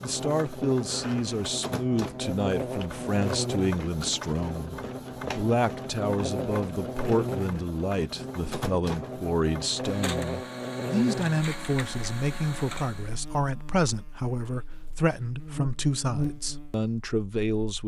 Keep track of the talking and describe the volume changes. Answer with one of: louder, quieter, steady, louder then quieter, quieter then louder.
steady.